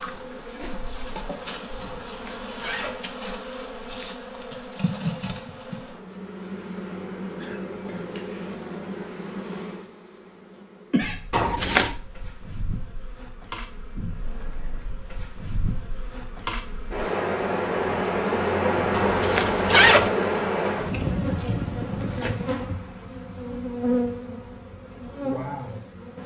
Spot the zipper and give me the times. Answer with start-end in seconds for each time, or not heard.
1.8-3.0, 11.3-11.9, 18.9-20.1.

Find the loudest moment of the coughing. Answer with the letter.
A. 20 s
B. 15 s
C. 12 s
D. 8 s
D.